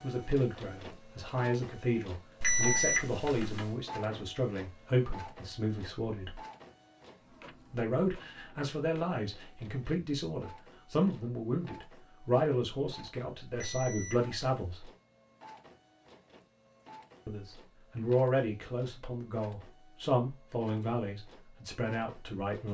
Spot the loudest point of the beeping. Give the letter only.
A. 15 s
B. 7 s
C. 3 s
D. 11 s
C.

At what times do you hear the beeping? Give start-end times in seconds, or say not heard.
2.4-3.8, 13.6-14.8.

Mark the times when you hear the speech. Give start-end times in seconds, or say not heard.
0.0-6.4, 7.7-14.9, 17.2-22.6.